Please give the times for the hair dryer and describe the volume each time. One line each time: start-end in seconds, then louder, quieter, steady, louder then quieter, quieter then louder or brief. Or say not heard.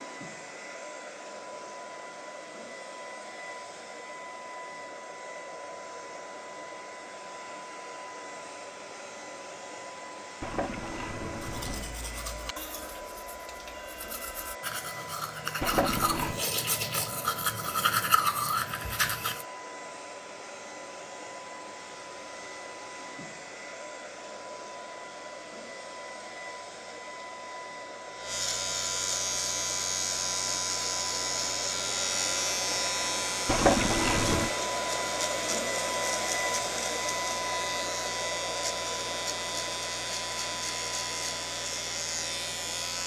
0.0-43.0 louder.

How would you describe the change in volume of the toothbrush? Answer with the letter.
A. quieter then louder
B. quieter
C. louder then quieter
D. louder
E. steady
D.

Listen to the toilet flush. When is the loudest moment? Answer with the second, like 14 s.
34 s.